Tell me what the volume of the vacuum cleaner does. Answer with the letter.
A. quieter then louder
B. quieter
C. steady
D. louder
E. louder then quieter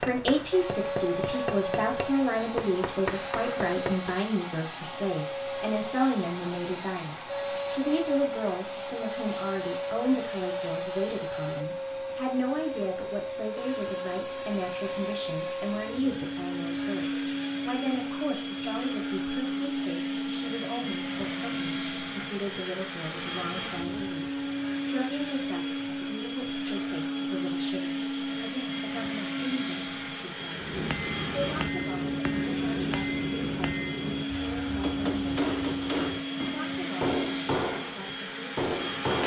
C.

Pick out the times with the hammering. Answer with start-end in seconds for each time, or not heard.
0.0-4.2, 30.5-39.2.